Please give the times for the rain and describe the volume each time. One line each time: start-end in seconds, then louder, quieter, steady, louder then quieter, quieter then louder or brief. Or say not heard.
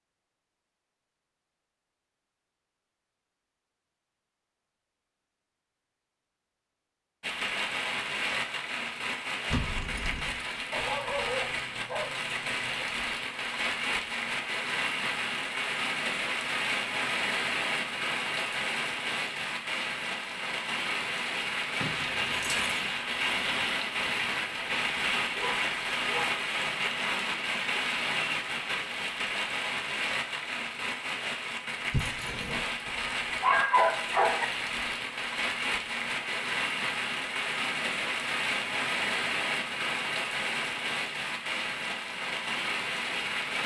7.2-43.6 steady.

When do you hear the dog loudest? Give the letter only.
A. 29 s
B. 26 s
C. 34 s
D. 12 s
C.